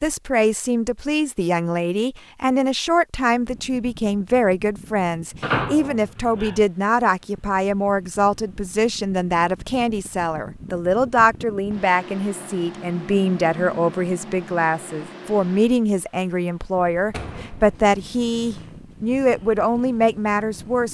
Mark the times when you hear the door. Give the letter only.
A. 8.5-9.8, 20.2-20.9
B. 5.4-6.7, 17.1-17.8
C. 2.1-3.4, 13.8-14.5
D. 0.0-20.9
B.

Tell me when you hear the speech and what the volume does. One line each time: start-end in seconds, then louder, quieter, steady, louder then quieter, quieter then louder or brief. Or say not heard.
0.0-20.9 steady.